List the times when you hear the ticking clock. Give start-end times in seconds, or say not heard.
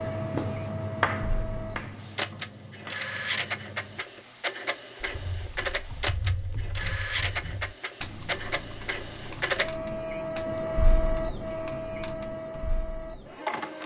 not heard.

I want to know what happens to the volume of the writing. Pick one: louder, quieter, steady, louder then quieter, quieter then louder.
quieter.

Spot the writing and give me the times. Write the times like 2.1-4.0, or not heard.
0.0-4.2.